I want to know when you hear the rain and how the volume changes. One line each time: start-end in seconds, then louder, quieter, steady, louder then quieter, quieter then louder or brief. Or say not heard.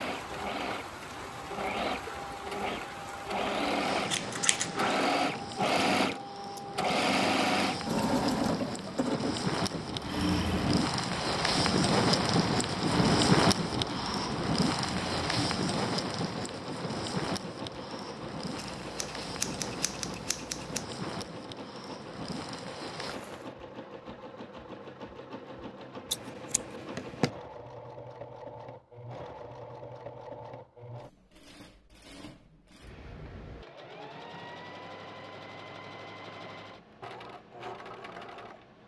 0.0-23.6 louder then quieter.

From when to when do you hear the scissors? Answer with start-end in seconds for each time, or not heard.
3.9-5.2, 18.8-20.9, 26.1-27.3.